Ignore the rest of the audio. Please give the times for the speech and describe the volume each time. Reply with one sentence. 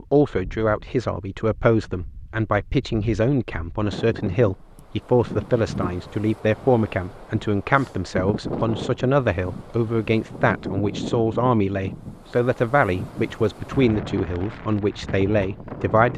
The speech can be heard from 0.0 to 16.1 s, at a steady volume.